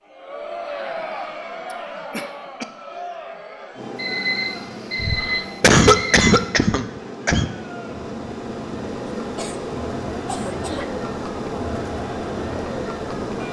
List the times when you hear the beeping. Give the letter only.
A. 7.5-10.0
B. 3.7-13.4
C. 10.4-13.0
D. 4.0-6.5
D.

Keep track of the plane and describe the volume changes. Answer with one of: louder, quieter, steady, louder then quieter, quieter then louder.
louder.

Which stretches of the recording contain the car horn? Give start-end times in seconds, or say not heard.
not heard.